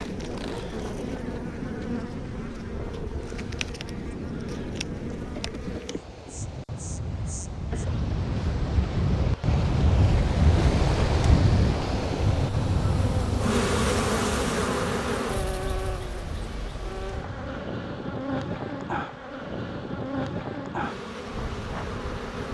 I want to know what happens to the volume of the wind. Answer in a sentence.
The volume of the wind goes up, then down.